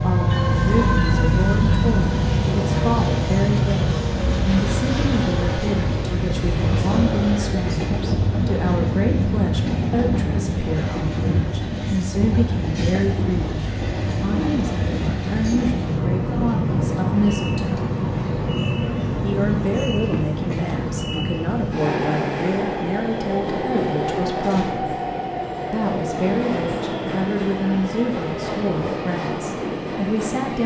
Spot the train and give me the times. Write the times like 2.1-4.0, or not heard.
0.0-30.6.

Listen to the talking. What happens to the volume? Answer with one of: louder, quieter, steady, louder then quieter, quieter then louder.
steady.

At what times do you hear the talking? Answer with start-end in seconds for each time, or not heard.
0.0-17.9, 19.2-24.9, 25.7-30.6.